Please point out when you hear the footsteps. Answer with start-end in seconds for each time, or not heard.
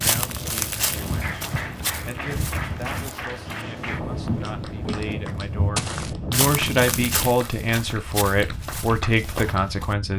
0.0-9.9.